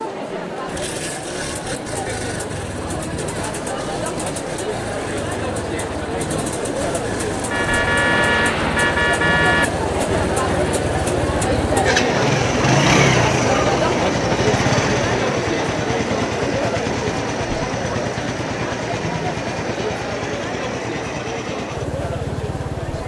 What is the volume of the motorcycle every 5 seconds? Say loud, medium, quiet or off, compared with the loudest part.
medium, medium, loud, medium, medium.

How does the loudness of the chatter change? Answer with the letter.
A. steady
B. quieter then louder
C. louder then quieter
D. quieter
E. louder
C.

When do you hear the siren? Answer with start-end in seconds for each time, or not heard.
not heard.